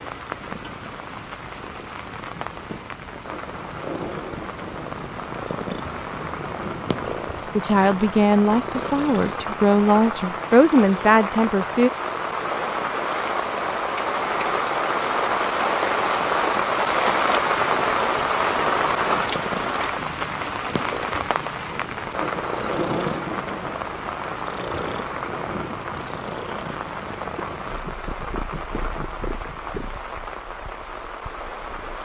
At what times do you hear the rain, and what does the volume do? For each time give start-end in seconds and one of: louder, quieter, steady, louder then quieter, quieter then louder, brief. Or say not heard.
0.0-32.0 louder then quieter.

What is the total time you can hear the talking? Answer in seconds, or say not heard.
4 s.